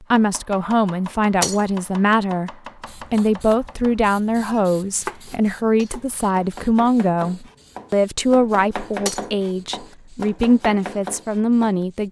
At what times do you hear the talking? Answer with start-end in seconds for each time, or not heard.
0.0-12.0.